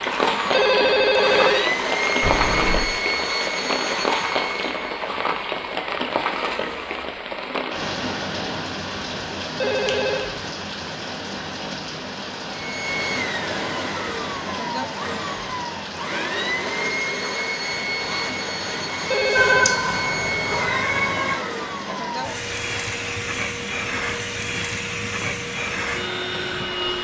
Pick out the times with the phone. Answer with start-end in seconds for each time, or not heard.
0.5-1.7, 9.6-10.4, 19.1-19.8.